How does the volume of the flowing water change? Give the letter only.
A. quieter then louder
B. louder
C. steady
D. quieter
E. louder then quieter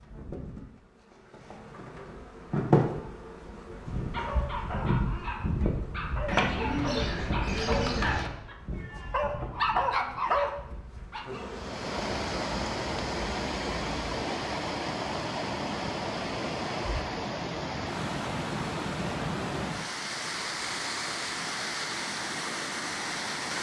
C.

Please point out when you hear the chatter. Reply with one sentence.
You can't hear the chatter here.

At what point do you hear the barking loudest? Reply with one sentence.
The volume of the barking peaks at 10 seconds.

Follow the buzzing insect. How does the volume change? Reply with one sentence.
The volume of the buzzing insect goes down.